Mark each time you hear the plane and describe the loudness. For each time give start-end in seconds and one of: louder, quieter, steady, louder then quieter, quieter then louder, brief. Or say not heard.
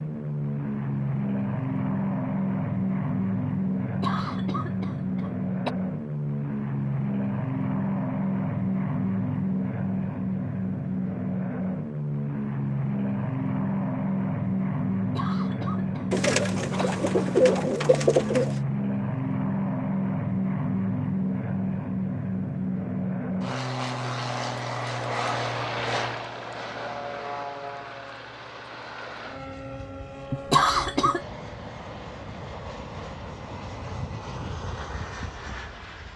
0.0-36.1 quieter.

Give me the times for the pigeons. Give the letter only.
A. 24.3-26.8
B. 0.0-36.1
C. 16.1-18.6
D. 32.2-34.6
C.